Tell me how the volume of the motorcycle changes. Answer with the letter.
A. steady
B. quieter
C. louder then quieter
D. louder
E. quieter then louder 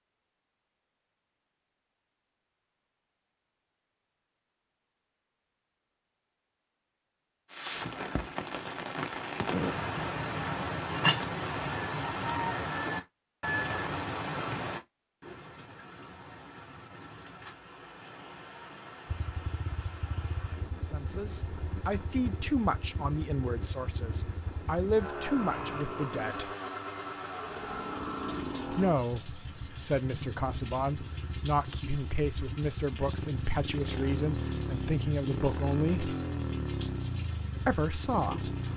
D.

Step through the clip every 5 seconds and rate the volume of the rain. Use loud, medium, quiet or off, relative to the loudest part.
off, loud, loud, quiet, quiet, quiet, quiet, quiet.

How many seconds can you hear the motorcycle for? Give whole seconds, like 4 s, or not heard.
20 s.